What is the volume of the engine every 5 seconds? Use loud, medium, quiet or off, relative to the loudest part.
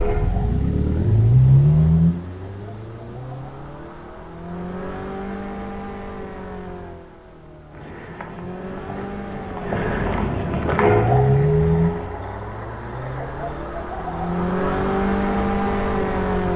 loud, quiet, loud, loud.